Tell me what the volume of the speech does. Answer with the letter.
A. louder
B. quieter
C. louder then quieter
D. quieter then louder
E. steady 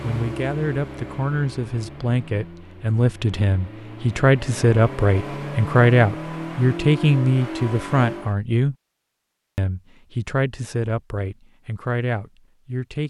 C.